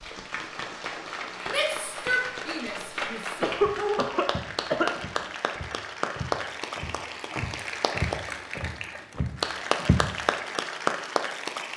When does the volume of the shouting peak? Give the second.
2 s.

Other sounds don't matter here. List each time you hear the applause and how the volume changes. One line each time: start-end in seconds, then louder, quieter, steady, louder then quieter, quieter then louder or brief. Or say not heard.
0.0-11.7 louder.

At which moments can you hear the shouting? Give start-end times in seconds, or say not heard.
1.4-3.5.